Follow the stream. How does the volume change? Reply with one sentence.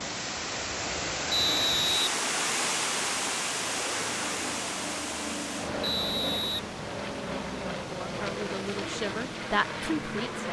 The volume of the stream goes down.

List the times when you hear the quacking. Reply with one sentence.
You can't hear the quacking here.